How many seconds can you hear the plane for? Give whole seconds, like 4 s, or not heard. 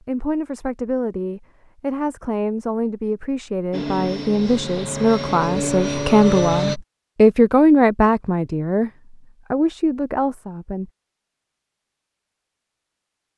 3 s.